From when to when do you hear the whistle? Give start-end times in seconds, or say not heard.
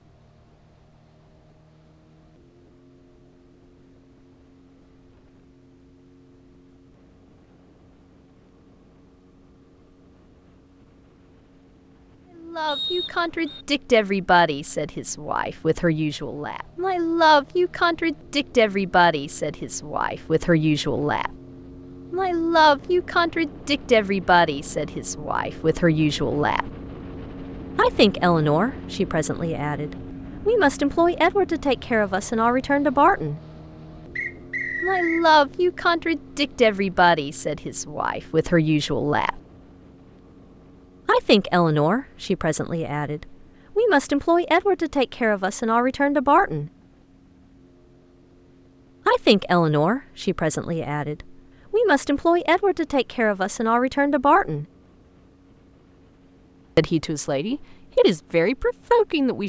12.7-13.7, 34.1-35.2.